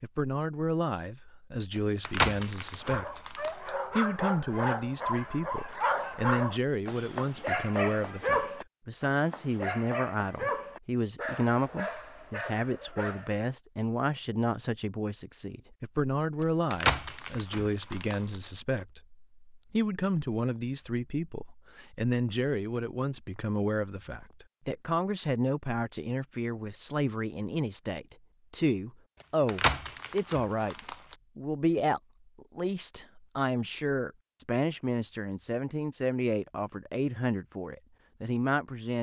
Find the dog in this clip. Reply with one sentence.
You can hear the dog from 2.8 to 13.4 s.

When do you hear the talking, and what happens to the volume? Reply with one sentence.
You can hear the talking from 0.0 to 38.9 s, at a steady volume.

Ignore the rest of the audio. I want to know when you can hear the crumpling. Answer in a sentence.
You can hear the crumpling from 1.8 to 3.7 s, from 16.4 to 18.4 s and from 29.2 to 31.1 s.